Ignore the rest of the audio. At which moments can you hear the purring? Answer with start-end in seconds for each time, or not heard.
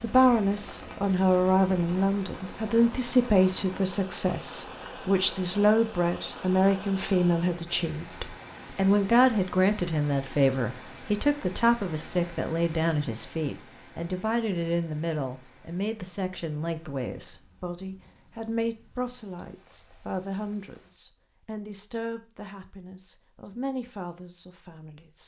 not heard.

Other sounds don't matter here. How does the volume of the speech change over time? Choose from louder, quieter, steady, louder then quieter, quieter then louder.
quieter.